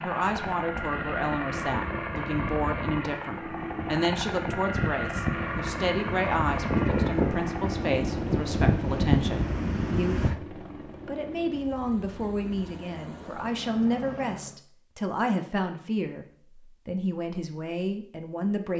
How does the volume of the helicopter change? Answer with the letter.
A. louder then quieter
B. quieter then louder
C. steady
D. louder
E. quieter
E.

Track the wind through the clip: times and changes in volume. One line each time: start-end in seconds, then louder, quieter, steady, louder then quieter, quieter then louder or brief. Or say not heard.
0.2-10.3 louder.